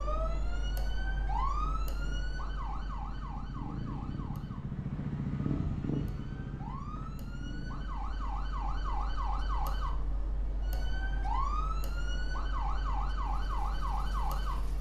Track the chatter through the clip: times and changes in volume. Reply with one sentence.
You can't hear the chatter here.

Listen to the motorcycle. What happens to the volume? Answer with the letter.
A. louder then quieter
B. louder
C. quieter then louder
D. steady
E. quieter
A.